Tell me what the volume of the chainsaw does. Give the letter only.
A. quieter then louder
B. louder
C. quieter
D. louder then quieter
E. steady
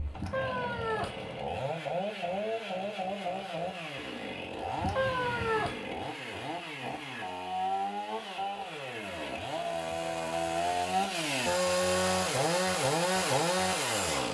B.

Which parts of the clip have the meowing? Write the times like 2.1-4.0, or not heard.
0.1-1.4, 4.8-5.8, 9.8-10.9.